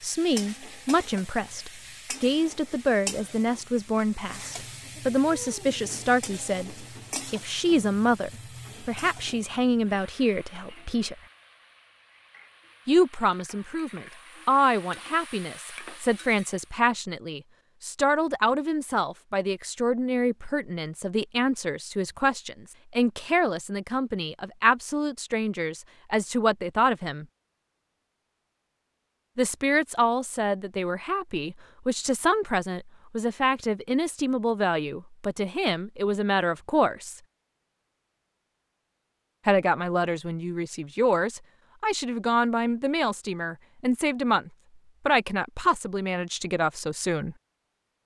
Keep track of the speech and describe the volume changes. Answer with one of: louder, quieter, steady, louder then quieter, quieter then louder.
steady.